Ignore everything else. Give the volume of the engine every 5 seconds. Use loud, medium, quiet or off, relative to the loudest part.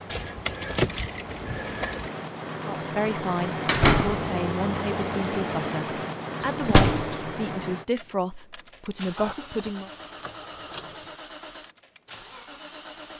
loud, loud, medium.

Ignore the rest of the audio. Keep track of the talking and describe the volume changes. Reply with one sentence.
The volume of the talking stays about the same.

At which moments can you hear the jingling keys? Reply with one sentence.
The jingling keys can be heard from 0.1 to 2.1 s, from 6.4 to 7.2 s and from 9.2 to 11.2 s.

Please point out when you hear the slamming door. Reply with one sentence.
You can hear the slamming door from 3.6 to 4.3 s and from 6.6 to 7.3 s.